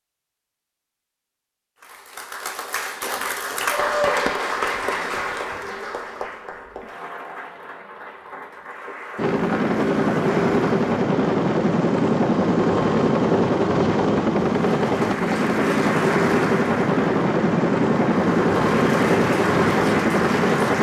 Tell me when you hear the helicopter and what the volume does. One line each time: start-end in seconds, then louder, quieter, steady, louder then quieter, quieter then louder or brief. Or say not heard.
9.2-20.7 steady.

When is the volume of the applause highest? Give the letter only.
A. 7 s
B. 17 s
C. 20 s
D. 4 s
D.